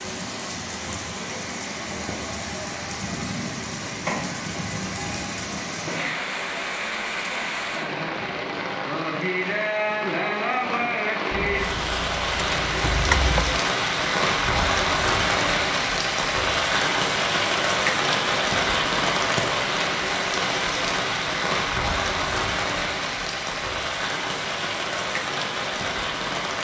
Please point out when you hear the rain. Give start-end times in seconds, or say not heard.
0.0-26.5.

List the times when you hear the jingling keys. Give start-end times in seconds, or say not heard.
11.6-13.6.